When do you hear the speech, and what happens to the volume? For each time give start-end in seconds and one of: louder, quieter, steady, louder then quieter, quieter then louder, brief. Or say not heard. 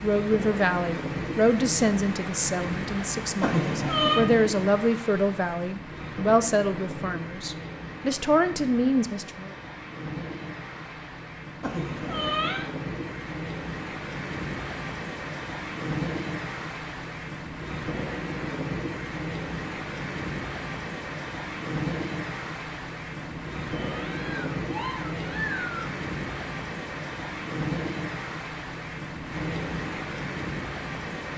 0.0-9.5 quieter then louder.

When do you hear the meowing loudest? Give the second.
4 s.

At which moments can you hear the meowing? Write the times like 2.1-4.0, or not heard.
3.4-4.2, 11.6-12.7, 23.2-25.8.